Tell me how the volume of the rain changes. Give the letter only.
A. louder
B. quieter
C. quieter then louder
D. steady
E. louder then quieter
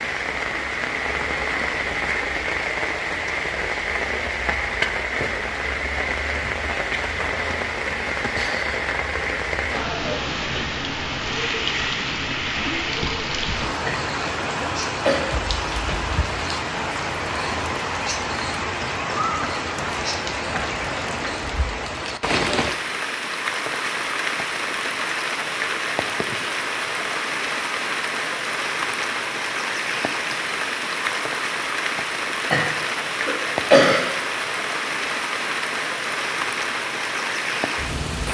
D.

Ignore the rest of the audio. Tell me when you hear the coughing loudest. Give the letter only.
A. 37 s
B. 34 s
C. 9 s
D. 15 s
B.